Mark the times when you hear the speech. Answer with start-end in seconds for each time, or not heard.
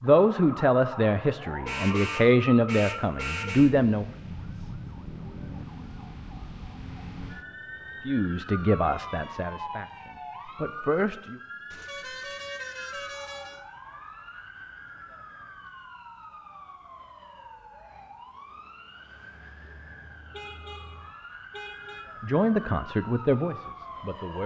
0.0-4.0, 8.1-11.3, 22.2-24.4.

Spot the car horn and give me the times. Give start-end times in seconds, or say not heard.
1.6-3.8, 11.7-13.6, 20.3-22.1.